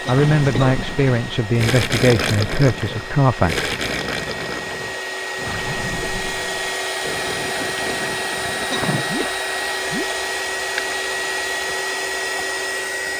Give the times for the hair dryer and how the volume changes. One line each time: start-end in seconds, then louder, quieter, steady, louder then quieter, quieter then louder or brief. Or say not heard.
0.0-13.1 louder.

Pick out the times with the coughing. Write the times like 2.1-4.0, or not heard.
0.1-0.8, 8.7-9.3.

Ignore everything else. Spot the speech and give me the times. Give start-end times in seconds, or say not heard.
0.1-3.7.